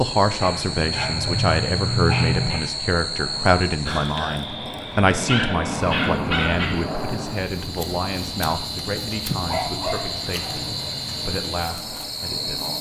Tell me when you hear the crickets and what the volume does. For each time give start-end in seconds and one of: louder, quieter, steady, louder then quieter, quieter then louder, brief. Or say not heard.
0.0-12.7 quieter then louder.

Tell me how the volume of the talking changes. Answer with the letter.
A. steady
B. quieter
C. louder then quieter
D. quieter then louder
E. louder
B.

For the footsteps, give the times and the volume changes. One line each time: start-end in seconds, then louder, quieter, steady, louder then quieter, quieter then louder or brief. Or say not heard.
not heard.